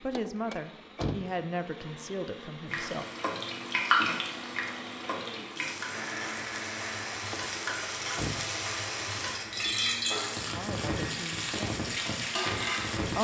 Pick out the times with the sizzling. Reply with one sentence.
The sizzling can be heard from 2.7 to 13.1 s.